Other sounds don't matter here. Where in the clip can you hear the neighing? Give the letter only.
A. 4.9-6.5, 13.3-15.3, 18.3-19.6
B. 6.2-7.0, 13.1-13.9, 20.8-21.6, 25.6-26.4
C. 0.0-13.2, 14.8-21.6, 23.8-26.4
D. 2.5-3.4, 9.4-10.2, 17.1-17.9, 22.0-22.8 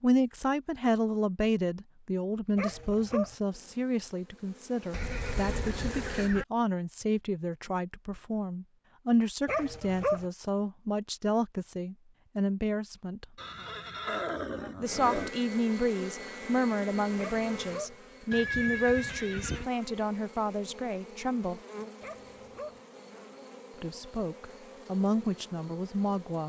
A.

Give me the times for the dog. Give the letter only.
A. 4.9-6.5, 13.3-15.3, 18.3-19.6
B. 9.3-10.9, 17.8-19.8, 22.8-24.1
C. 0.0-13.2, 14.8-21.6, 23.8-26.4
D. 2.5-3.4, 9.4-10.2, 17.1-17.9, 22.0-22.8
D.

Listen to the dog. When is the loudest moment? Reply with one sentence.
The volume of the dog peaks at 10 seconds.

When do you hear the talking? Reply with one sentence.
You can hear the talking from 0.0 to 13.2 s, from 14.8 to 21.6 s and from 23.8 to 26.4 s.